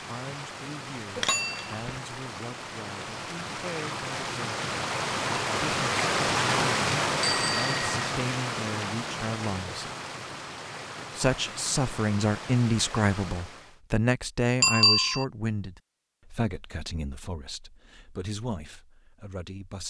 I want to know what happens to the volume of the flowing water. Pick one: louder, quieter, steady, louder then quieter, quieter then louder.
louder then quieter.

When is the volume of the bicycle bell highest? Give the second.
15 s.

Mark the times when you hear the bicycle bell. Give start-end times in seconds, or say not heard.
1.1-2.0, 7.2-7.9, 14.6-15.2.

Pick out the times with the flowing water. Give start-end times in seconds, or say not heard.
0.0-13.8.